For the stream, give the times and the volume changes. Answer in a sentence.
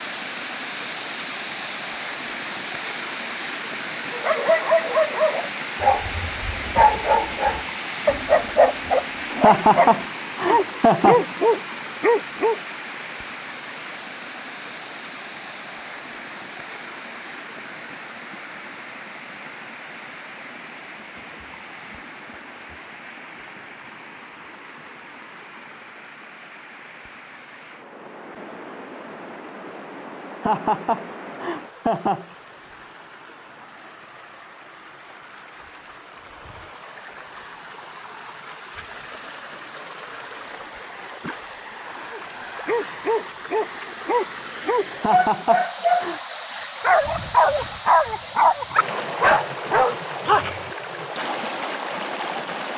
The stream can be heard from 0.0 to 52.7 s, getting quieter then louder.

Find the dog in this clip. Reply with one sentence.
You can hear the dog from 4.1 to 12.6 s and from 42.1 to 50.7 s.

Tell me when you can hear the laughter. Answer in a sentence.
The laughter can be heard from 9.3 to 11.2 s, from 30.3 to 32.2 s and from 44.9 to 46.2 s.